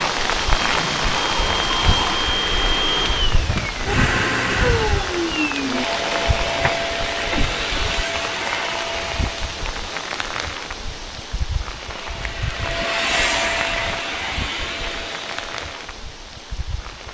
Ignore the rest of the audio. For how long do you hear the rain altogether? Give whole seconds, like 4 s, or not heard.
17 s.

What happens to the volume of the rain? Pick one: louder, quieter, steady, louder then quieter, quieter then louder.
quieter.